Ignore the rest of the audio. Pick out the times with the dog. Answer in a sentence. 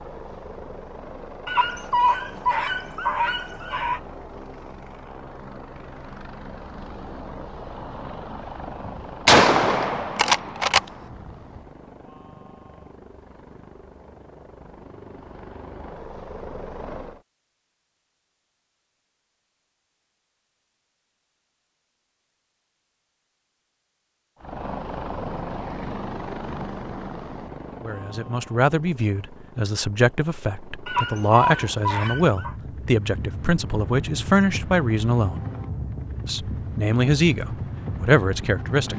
You can hear the dog from 1.4 to 4.0 s and from 30.9 to 32.5 s.